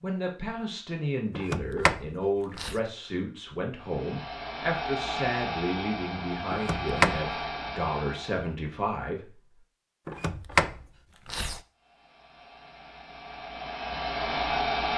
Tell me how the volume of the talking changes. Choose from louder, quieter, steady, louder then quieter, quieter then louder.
steady.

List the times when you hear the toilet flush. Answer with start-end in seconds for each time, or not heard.
not heard.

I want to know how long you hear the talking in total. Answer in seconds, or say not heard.
9 s.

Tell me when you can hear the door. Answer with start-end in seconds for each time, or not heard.
1.4-2.8, 6.5-7.2, 10.1-11.6.